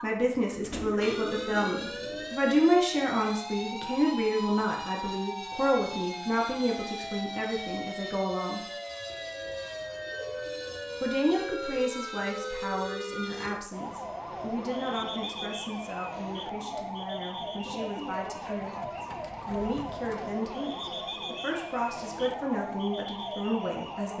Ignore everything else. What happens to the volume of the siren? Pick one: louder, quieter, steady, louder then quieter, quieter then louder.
steady.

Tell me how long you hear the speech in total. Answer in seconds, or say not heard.
22 s.